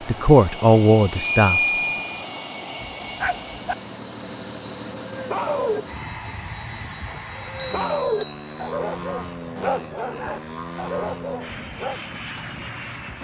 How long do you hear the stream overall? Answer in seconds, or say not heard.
not heard.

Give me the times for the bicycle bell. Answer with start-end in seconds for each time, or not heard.
1.1-2.2, 7.0-8.5.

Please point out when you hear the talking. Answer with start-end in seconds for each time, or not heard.
0.1-1.6.